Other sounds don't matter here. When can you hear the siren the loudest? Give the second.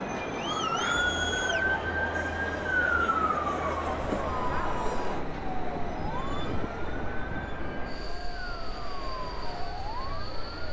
3 s.